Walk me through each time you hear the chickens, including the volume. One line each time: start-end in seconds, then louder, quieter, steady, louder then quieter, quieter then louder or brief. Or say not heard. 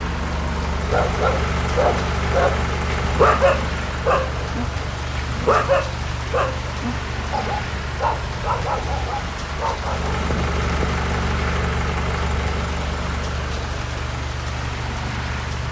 not heard.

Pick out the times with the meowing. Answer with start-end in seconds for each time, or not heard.
10.2-11.0.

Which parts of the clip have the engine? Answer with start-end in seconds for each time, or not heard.
0.0-15.6.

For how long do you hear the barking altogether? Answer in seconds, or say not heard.
9 s.